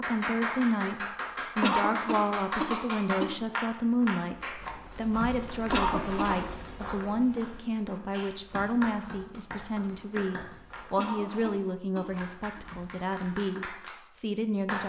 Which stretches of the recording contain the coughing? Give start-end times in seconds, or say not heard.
1.6-3.4, 5.7-6.5, 10.9-12.6.